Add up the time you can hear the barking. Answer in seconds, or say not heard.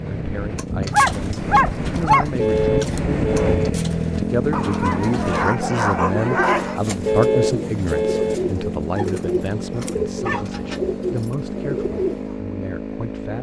6 s.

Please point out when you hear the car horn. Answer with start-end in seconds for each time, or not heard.
2.4-3.7, 7.0-8.3.